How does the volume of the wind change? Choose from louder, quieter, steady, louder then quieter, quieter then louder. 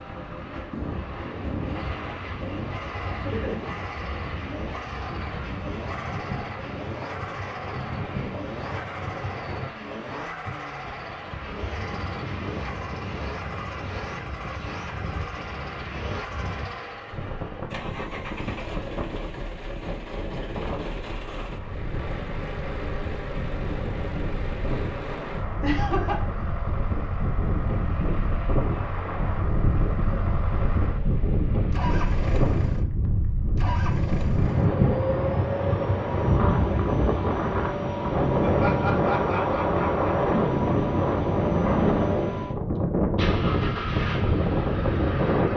louder.